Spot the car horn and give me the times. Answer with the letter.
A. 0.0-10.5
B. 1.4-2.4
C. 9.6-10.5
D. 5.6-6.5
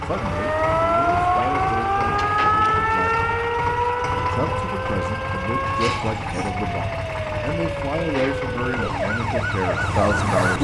D.